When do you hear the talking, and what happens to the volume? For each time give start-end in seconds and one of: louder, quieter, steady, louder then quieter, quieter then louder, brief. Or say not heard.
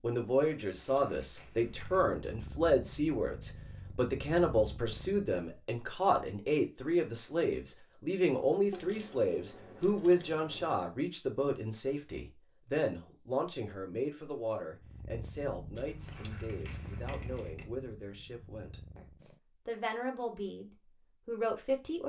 0.0-22.0 quieter.